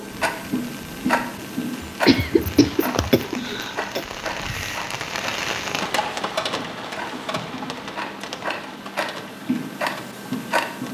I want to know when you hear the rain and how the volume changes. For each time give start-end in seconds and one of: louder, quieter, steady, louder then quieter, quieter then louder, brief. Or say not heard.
0.0-10.8 louder then quieter.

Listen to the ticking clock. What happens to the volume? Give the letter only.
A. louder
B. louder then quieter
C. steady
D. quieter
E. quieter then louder
E.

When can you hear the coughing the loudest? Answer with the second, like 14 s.
2 s.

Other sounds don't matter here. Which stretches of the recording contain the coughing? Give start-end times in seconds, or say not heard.
1.9-4.0.